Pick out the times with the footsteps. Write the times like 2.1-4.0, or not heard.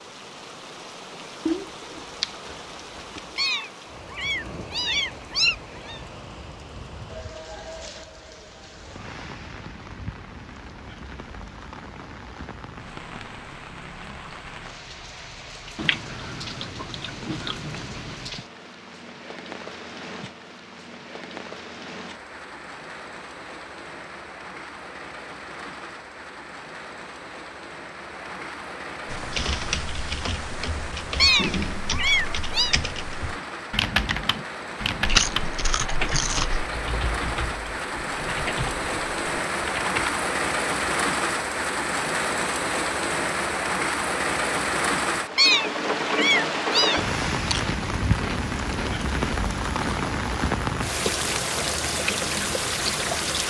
not heard.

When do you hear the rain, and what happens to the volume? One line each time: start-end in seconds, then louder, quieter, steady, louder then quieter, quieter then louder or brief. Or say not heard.
0.0-53.4 louder.